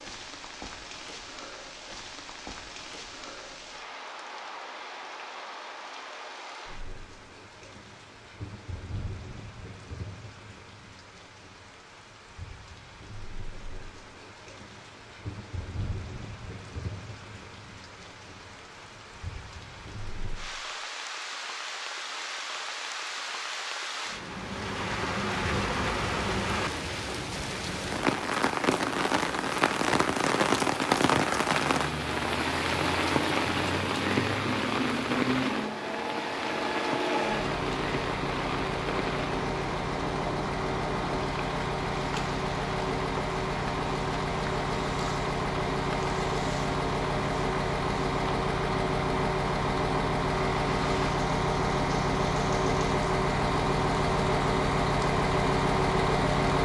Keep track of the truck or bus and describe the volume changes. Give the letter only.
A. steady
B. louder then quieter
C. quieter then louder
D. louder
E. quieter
D.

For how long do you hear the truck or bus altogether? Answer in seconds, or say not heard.
25 s.